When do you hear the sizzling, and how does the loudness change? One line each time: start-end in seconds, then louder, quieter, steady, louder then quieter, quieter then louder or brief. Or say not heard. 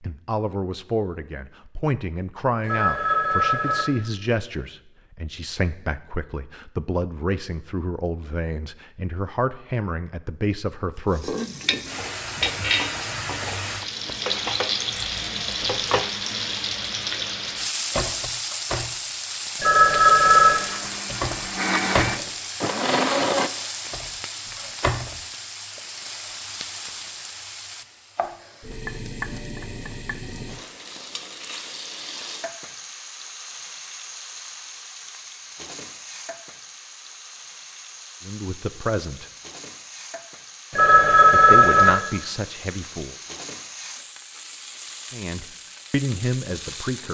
11.1-47.1 quieter.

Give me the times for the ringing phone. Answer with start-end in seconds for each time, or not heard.
2.6-3.9, 19.6-20.6, 40.7-41.9.